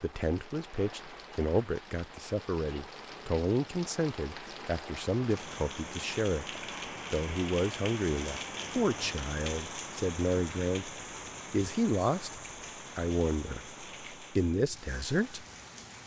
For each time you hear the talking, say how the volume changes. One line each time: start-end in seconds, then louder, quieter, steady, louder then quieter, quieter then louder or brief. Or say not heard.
0.0-15.4 steady.